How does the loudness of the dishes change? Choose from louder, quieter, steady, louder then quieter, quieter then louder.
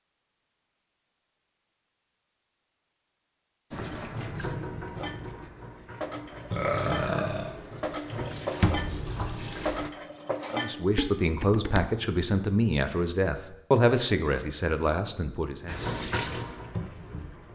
louder.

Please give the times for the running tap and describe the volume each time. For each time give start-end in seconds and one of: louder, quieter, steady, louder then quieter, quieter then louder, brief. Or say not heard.
3.7-9.9 quieter then louder
15.7-17.5 brief.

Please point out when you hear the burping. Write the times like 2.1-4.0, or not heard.
6.5-7.5.